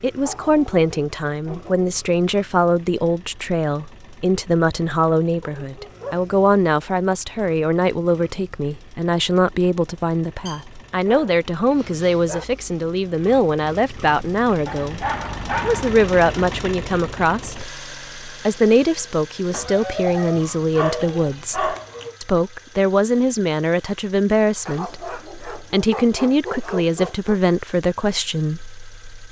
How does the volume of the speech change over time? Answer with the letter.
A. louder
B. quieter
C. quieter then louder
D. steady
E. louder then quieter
D.